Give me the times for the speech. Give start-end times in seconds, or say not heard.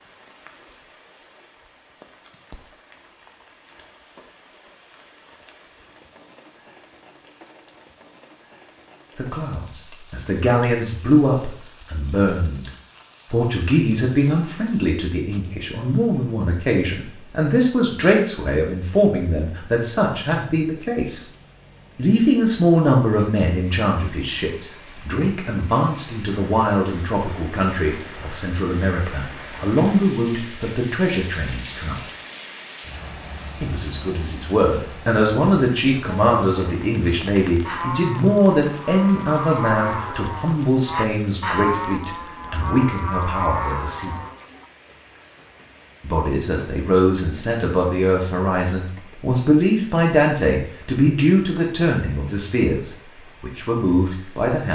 9.2-12.7, 13.3-21.2, 21.9-32.0, 33.6-44.1, 46.0-54.6.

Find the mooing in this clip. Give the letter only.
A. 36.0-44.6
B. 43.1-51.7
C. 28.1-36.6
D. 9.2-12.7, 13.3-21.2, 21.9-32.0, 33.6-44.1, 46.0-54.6
A.